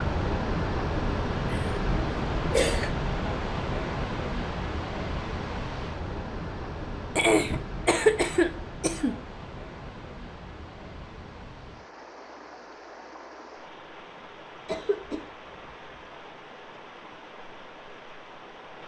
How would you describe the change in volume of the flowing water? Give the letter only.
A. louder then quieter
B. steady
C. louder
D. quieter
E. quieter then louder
D.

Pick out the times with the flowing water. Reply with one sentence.
You can hear the flowing water from 0.0 to 18.8 s.